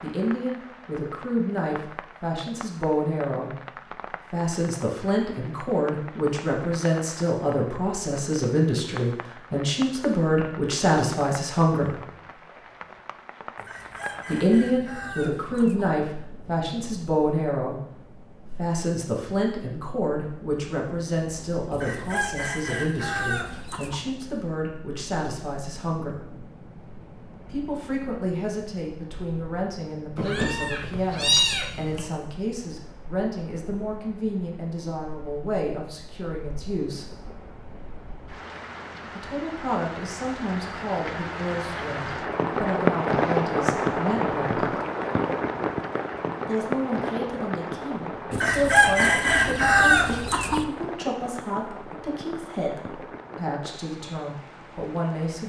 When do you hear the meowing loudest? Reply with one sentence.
The volume of the meowing peaks at 31 seconds.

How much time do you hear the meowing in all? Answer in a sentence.
You can hear the meowing for 2 seconds altogether.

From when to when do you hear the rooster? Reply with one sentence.
You can hear the rooster from 13.6 to 15.9 s, from 21.7 to 24.1 s and from 48.3 to 50.6 s.